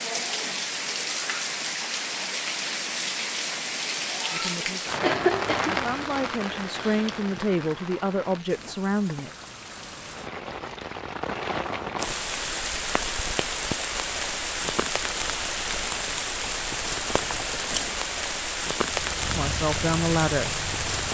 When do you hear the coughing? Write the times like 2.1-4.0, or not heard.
5.0-5.8.